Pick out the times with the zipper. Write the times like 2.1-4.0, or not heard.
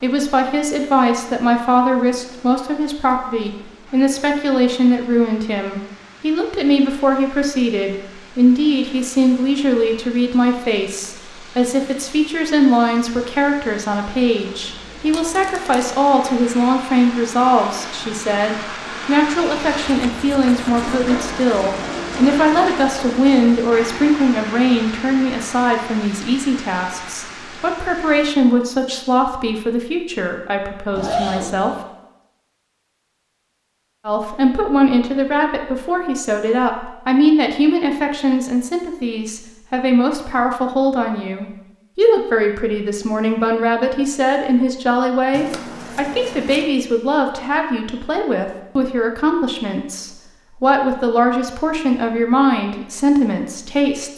30.9-31.8.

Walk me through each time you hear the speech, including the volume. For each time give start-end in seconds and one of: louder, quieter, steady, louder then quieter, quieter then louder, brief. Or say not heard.
0.0-31.8 steady
34.0-54.1 steady.